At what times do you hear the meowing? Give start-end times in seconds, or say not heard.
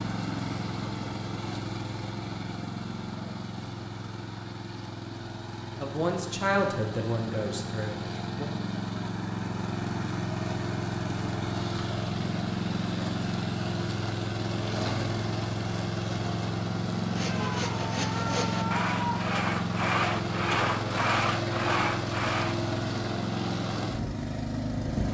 17.2-19.3.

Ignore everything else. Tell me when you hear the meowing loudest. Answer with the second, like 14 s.
19 s.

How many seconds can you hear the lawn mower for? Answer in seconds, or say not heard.
25 s.